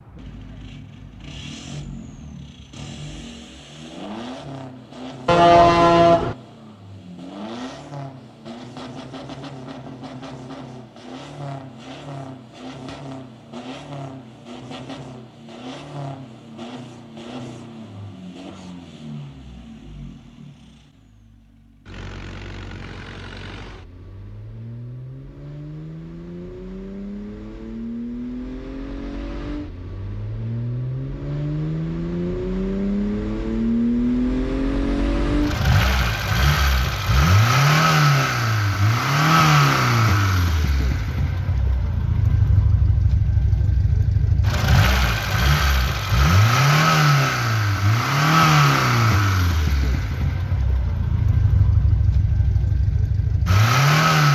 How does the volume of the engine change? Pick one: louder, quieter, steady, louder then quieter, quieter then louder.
louder.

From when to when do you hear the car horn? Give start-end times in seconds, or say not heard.
5.2-6.3.